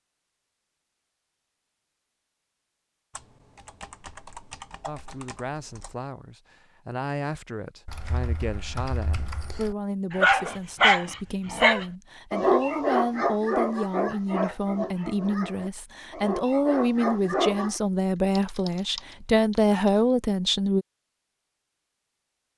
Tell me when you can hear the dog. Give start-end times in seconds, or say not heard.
10.1-17.8.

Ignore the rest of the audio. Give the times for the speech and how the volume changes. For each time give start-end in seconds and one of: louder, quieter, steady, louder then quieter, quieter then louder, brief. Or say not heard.
4.8-20.9 louder.